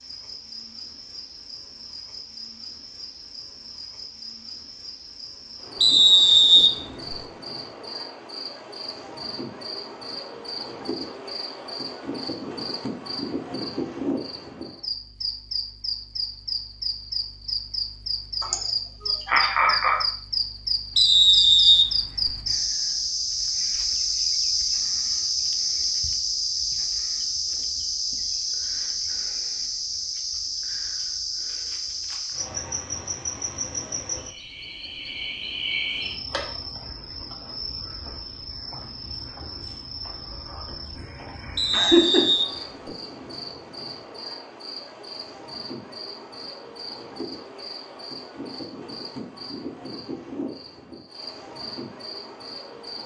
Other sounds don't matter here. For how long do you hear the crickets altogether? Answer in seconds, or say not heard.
53 s.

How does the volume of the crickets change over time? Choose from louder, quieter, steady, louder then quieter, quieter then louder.
louder then quieter.